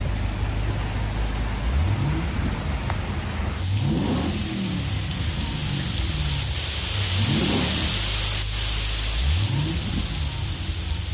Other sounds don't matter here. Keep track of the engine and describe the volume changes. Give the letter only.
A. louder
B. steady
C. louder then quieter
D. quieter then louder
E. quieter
B.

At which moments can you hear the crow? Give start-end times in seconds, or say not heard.
not heard.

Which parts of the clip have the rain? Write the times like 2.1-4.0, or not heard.
0.0-11.0.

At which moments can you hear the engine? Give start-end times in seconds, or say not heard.
0.0-11.0.